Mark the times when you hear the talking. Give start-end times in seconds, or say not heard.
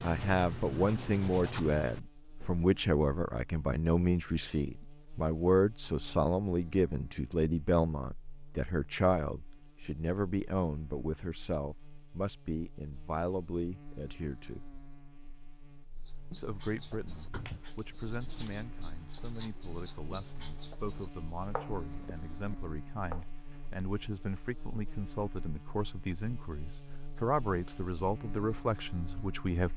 0.0-14.7, 16.3-29.7.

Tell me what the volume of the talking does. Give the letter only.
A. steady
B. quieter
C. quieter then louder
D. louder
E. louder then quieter
C.